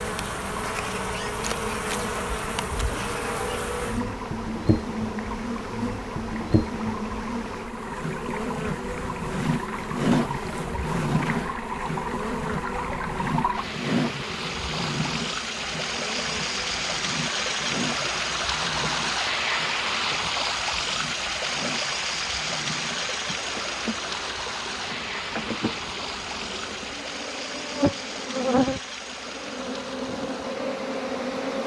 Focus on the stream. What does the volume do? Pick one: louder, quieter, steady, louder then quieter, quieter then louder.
louder then quieter.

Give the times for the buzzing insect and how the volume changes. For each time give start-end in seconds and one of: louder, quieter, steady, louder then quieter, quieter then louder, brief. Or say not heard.
0.0-31.6 quieter then louder.